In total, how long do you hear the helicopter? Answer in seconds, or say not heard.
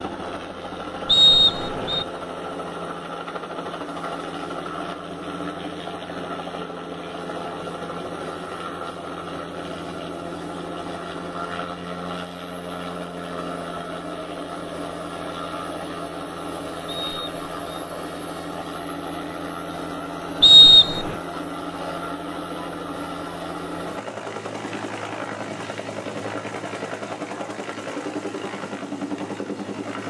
30 s.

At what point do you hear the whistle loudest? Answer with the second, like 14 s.
21 s.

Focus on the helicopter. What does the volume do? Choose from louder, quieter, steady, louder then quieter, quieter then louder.
steady.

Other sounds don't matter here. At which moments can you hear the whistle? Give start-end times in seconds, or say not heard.
1.1-2.0, 16.9-17.9, 20.4-21.1.